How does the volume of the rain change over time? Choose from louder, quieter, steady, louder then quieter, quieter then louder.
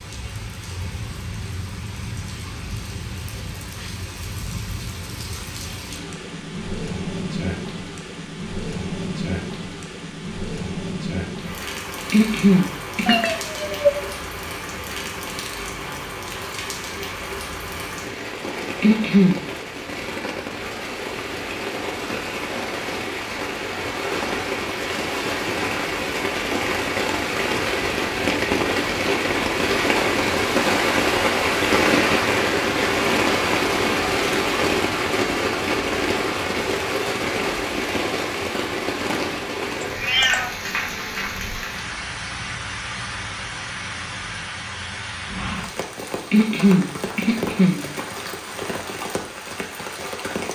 louder then quieter.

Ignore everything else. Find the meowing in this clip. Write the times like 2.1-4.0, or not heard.
13.1-14.0, 39.8-40.5.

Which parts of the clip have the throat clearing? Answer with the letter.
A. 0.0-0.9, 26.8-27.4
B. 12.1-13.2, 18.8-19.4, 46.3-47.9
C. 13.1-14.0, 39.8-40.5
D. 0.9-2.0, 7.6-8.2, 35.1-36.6
B.